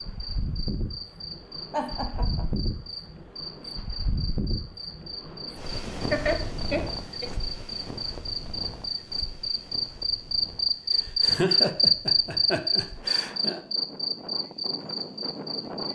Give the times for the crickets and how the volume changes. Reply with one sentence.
You can hear the crickets from 0.0 to 15.9 s, getting louder then quieter.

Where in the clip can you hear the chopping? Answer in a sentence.
The chopping can't be heard in this clip.